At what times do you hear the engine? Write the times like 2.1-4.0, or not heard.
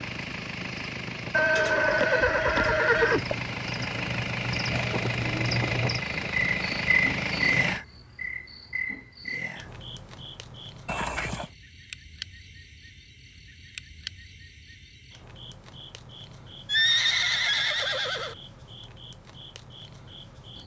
0.0-7.8.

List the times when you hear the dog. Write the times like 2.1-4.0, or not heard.
not heard.